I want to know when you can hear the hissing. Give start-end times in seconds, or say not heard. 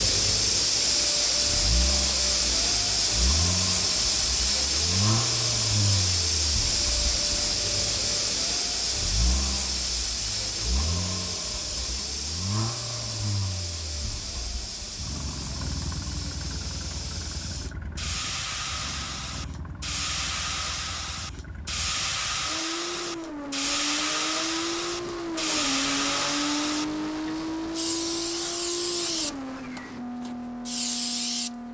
0.0-31.6.